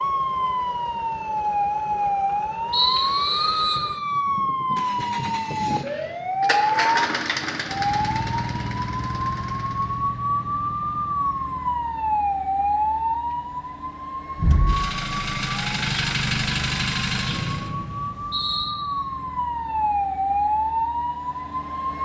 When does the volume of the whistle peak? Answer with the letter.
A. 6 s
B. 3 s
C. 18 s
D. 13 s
B.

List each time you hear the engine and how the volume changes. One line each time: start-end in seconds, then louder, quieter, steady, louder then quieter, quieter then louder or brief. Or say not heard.
0.0-10.1 louder then quieter
13.2-17.7 louder.